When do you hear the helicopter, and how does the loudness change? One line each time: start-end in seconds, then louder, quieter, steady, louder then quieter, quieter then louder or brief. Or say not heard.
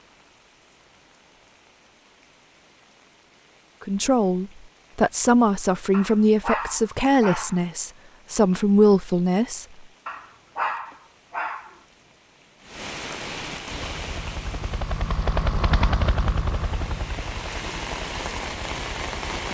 13.7-19.4 louder then quieter.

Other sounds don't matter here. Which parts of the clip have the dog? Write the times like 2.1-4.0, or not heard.
5.9-7.7, 10.1-11.8.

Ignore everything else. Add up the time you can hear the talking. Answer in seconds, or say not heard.
6 s.